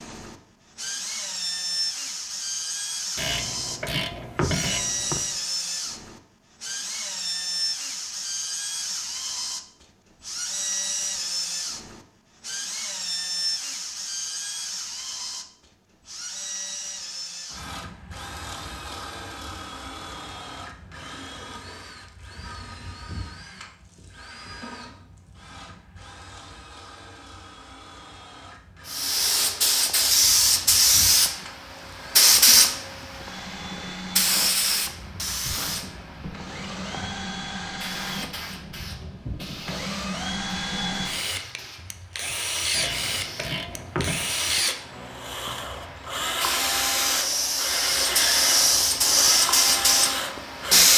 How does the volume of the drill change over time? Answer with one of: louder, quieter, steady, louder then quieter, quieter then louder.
quieter then louder.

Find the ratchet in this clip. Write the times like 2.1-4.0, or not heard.
3.1-5.2, 42.7-44.4.